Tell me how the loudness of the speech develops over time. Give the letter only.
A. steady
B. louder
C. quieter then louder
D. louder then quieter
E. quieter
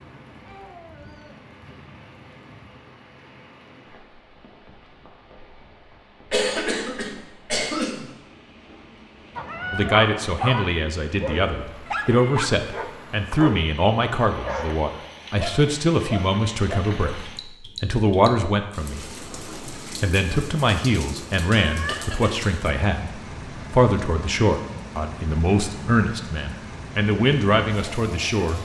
A.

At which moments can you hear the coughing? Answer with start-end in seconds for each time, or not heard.
6.3-8.2, 21.9-22.4.